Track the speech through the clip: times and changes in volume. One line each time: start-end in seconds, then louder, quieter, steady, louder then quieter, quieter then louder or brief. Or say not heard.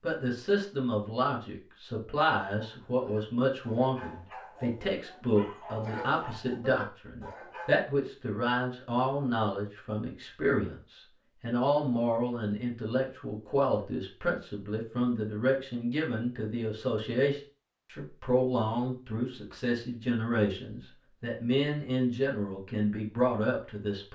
0.0-24.0 steady.